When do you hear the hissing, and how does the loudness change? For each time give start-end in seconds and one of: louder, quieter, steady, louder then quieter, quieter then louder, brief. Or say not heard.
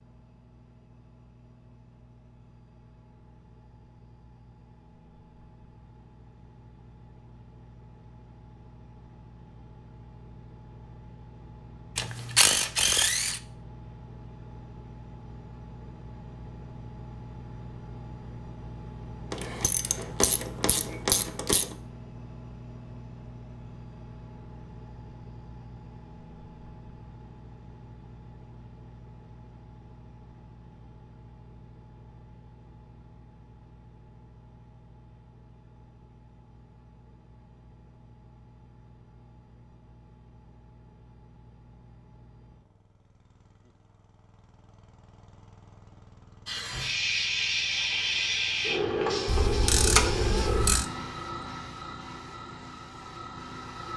46.5-53.9 quieter.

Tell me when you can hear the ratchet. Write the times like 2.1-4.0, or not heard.
11.9-13.4, 19.3-21.8, 49.2-50.9.